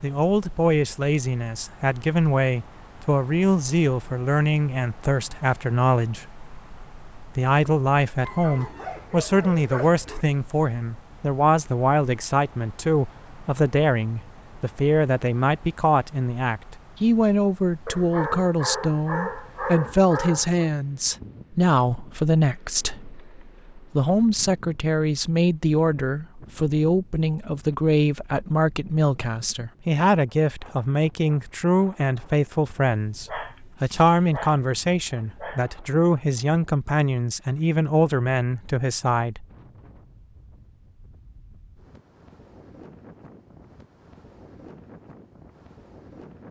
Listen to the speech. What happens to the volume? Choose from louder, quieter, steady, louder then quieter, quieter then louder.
steady.